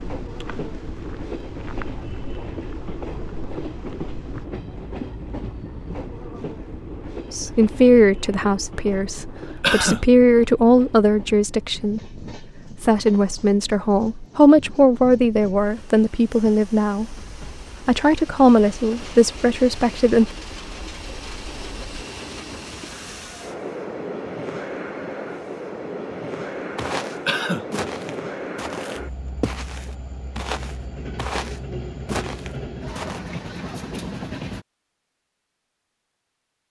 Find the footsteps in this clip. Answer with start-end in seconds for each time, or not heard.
0.0-4.5, 26.8-33.2.